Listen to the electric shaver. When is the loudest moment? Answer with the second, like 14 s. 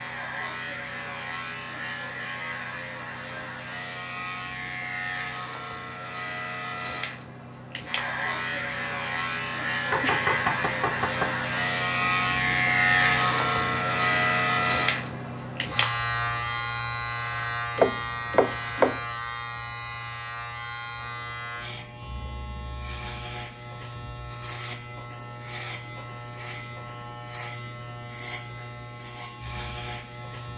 13 s.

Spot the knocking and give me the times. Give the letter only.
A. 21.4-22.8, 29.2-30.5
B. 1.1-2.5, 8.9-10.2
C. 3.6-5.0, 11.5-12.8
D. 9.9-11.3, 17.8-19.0
D.